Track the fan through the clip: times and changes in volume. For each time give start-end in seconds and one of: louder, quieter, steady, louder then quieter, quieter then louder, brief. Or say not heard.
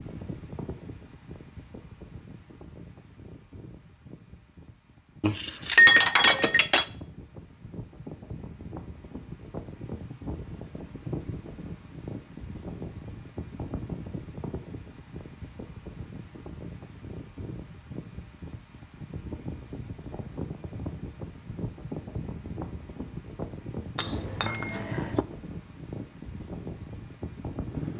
0.0-27.9 louder.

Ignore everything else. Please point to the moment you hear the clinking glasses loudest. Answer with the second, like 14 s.
6 s.